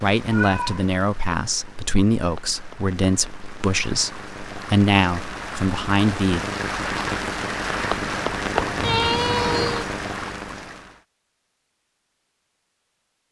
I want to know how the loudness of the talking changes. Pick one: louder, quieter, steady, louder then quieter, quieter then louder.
steady.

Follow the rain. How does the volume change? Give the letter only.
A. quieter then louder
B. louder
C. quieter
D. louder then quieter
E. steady
B.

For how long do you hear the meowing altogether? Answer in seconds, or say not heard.
2 s.